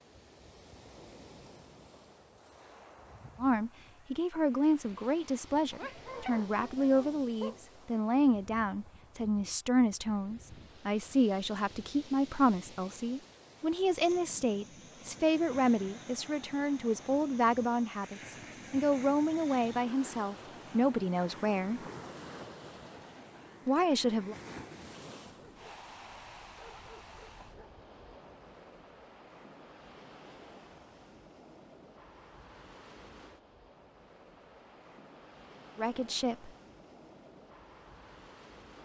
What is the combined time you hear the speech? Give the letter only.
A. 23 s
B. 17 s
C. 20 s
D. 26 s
C.